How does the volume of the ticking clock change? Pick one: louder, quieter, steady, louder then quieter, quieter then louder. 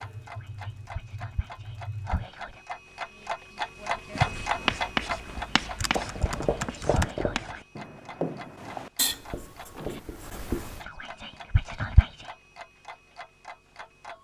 louder then quieter.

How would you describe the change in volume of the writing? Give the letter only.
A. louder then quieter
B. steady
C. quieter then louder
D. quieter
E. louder
D.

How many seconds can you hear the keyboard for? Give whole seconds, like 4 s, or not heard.
4 s.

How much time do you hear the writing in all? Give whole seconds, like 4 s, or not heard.
7 s.